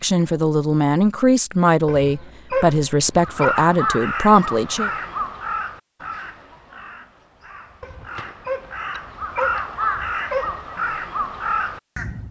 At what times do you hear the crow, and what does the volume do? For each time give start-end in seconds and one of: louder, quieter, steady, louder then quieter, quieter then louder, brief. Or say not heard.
3.2-12.2 quieter then louder.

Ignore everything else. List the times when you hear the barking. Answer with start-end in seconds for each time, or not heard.
1.9-3.5, 7.8-10.7.